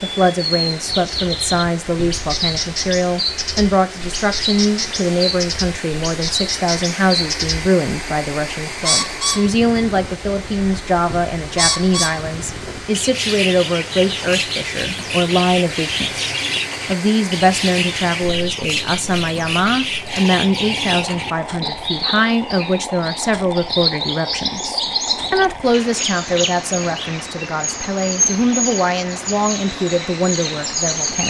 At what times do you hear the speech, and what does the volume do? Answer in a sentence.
You can hear the speech from 0.0 to 31.2 s, at a steady volume.